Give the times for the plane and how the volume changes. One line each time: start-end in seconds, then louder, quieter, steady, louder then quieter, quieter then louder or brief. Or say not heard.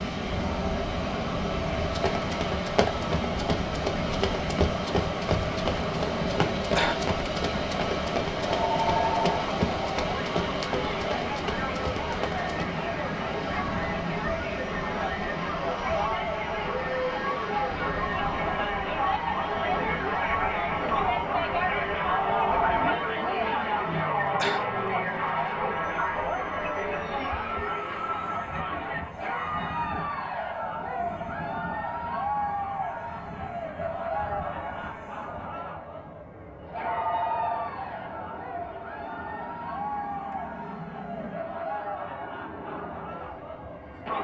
0.0-44.2 quieter.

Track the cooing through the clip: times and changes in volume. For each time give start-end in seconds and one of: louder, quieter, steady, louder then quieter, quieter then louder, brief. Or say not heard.
not heard.